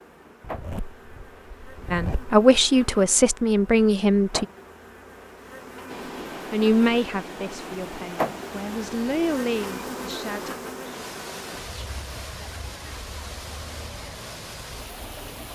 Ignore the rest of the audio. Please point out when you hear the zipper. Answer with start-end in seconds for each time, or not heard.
0.4-2.4.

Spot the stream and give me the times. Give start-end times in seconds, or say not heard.
5.8-15.4.